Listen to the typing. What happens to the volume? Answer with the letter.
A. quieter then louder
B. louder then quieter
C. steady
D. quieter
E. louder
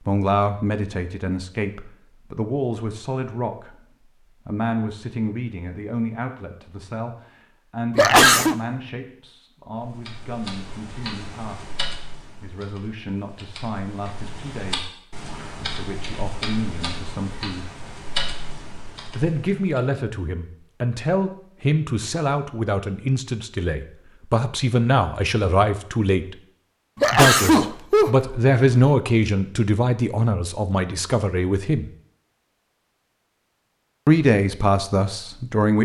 A.